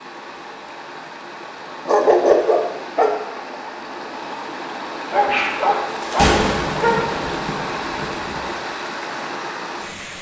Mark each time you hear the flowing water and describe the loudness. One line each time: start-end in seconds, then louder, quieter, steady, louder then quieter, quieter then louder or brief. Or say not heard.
0.0-10.1 louder.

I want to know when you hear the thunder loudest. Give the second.
6 s.